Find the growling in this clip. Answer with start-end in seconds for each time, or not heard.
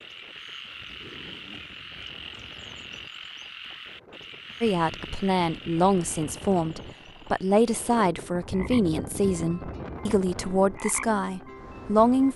0.7-1.8.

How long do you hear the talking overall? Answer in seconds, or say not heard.
8 s.